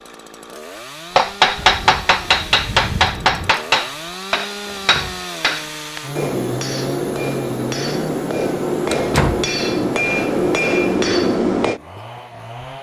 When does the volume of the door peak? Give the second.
9 s.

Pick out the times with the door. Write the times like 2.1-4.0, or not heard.
1.8-2.2, 4.7-5.2, 8.9-9.4.